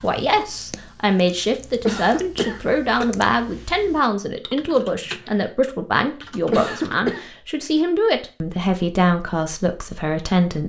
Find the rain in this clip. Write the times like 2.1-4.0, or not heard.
not heard.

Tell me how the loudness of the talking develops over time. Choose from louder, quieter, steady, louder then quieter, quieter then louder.
steady.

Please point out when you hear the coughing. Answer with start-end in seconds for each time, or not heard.
1.9-3.1, 6.5-7.2.